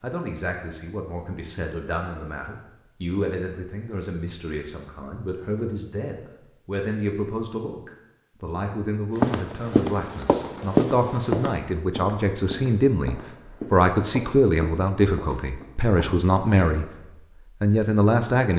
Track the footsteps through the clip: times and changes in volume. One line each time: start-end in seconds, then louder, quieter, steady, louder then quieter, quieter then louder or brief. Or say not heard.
9.2-16.1 quieter.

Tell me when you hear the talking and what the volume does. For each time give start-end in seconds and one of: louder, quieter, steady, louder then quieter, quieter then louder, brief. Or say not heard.
0.0-16.9 louder
17.6-18.5 brief.